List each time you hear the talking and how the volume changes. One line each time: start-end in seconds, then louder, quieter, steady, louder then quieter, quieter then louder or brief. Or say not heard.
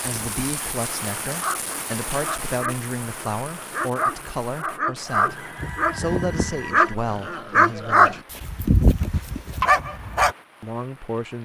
0.0-8.2 steady
10.6-11.4 brief.